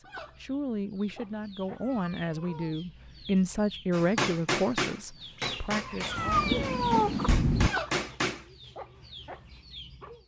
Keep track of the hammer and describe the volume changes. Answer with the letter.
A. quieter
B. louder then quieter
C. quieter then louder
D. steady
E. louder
C.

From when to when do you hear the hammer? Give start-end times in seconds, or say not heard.
3.9-8.4.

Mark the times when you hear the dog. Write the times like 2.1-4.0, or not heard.
not heard.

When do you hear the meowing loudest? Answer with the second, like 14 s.
7 s.